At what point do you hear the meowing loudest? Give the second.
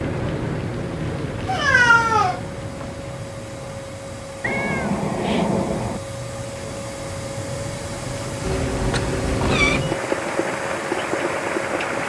2 s.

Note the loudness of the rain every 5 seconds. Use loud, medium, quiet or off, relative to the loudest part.
medium, medium, loud.